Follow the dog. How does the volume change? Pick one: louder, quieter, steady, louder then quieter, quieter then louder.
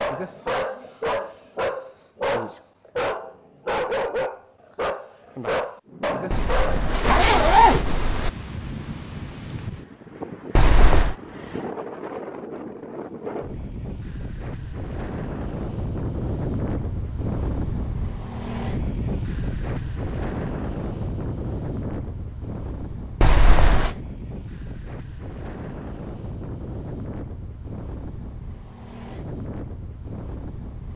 steady.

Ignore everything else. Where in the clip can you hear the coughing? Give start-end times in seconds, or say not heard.
not heard.